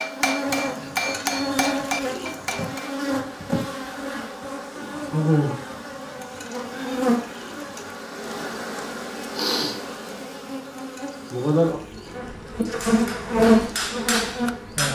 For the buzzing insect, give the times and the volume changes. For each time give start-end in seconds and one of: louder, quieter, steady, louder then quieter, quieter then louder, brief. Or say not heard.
0.0-14.8 louder.